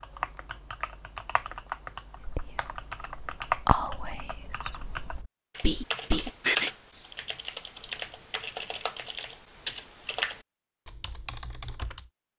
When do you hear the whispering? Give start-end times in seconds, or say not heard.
2.2-6.7.